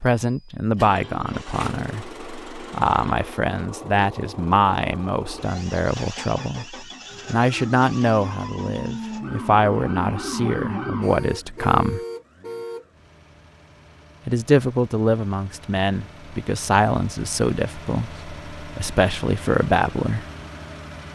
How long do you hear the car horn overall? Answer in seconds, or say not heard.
2 s.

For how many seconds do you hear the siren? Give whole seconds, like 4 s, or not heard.
4 s.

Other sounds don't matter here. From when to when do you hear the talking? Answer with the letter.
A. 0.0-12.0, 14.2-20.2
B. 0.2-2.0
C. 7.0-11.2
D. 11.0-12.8
A.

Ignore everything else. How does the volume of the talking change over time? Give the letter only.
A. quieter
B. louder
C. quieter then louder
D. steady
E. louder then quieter
D.